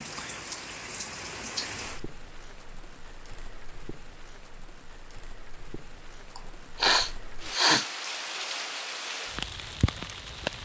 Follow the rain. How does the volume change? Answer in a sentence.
The volume of the rain goes down, then up.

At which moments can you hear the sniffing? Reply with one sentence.
You can hear the sniffing from 6.3 to 7.8 s.